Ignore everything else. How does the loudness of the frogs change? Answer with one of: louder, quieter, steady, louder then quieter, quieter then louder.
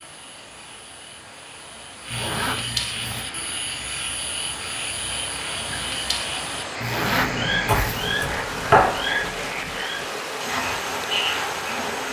louder.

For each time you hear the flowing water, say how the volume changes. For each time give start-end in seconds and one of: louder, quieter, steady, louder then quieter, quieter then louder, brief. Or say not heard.
0.0-12.0 louder.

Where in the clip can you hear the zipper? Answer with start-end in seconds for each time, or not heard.
2.1-3.2, 6.8-8.2.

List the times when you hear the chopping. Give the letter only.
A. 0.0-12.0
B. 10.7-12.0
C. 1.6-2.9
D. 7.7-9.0
D.